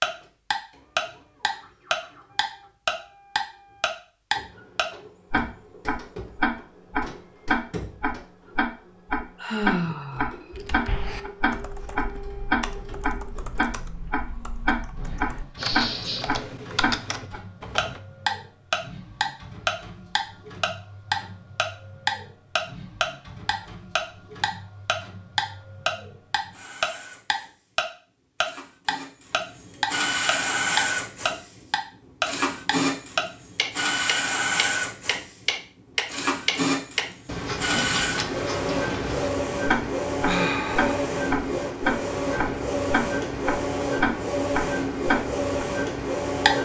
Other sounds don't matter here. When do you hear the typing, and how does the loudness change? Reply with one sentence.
You can hear the typing from 10.5 to 18.0 s, getting quieter then louder.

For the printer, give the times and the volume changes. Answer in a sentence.
You can hear the printer from 0.0 to 46.6 s, getting louder.